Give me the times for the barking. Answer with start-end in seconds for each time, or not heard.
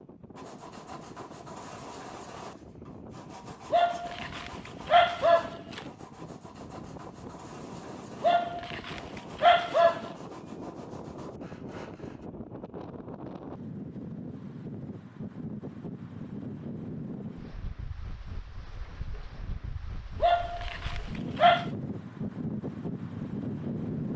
3.7-5.8, 8.2-10.1, 20.2-21.6.